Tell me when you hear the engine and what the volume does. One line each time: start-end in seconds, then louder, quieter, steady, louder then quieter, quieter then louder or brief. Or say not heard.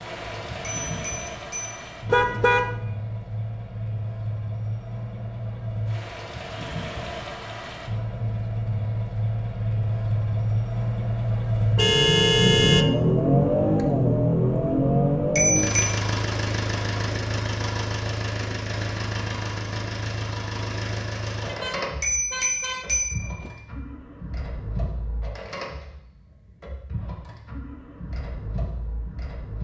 0.0-29.5 louder then quieter.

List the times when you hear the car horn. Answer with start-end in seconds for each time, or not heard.
2.0-2.8, 11.8-12.9, 21.4-23.5.